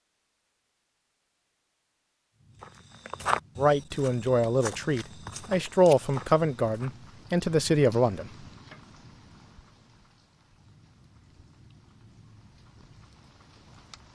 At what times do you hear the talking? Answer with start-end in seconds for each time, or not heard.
3.5-8.3.